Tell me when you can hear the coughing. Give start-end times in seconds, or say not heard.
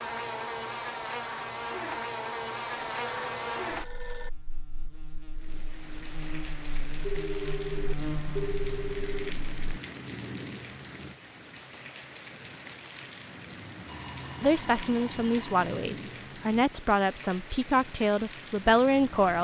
not heard.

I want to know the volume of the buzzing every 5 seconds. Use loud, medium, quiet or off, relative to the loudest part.
loud, medium, off, off.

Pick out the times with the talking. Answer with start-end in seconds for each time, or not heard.
14.4-19.3.